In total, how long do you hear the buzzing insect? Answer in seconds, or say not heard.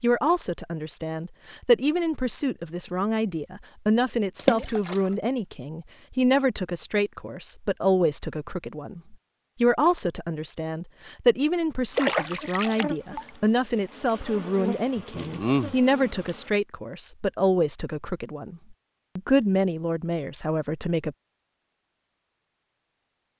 4 s.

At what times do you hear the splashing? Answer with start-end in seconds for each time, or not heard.
4.3-5.0, 11.9-13.3.